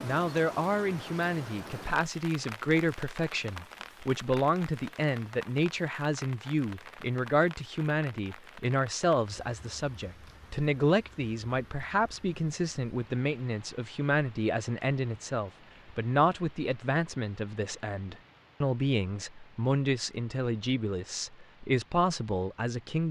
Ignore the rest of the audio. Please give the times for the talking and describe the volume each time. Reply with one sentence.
The talking can be heard from 0.0 to 23.0 s, at a steady volume.